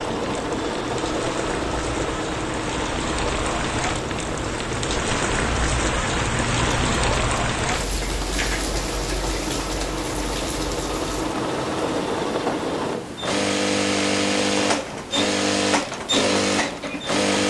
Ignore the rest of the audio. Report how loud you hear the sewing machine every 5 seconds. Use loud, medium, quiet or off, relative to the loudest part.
medium, medium, loud, loud.